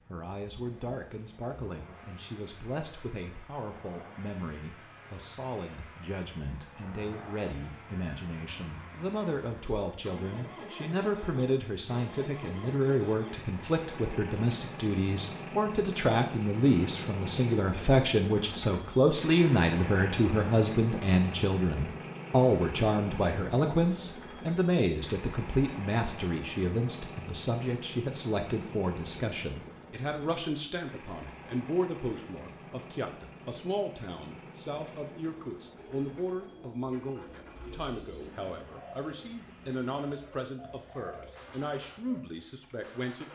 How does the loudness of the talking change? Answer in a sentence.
The loudness of the talking goes up, then down.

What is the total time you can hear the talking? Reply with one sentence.
You can hear the talking for 43 seconds altogether.